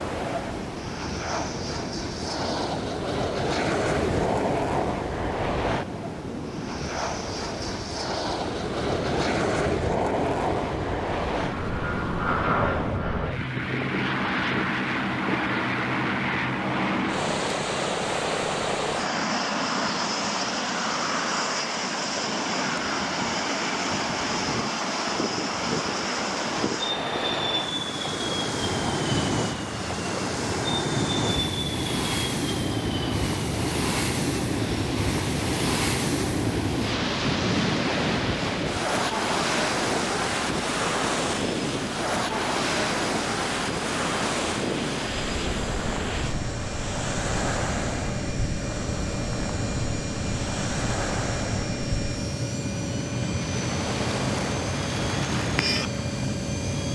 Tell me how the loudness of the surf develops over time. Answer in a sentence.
The loudness of the surf goes up, then down.